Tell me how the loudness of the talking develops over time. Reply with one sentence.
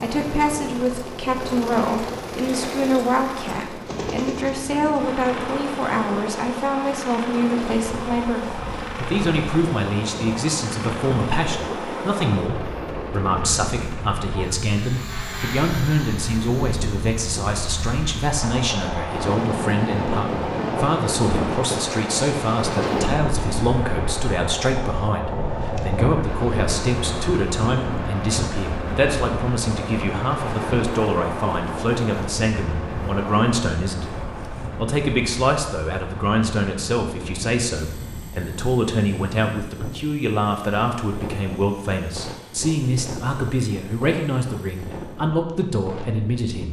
The loudness of the talking stays about the same.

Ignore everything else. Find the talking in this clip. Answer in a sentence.
The talking can be heard from 0.0 to 46.6 s.